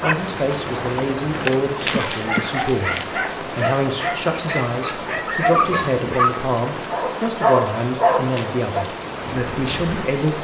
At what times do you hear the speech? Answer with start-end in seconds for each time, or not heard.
0.0-10.3.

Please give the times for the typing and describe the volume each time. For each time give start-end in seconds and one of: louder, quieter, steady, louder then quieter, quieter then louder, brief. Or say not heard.
not heard.